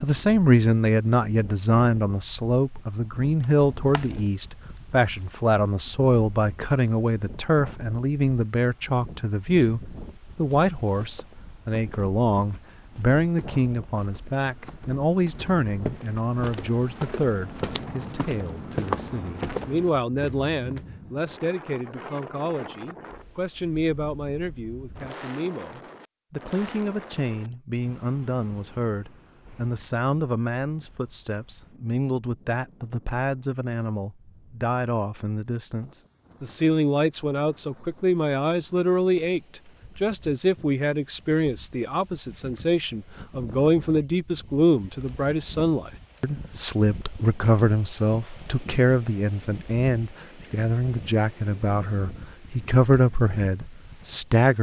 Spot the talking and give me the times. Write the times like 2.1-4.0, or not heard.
0.0-54.5.